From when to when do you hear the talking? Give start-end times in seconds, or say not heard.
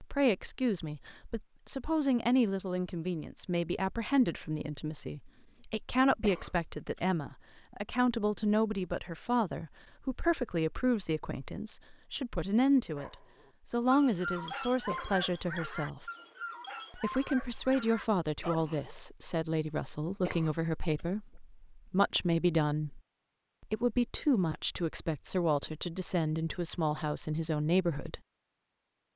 0.0-16.1, 16.9-23.0, 23.6-28.2.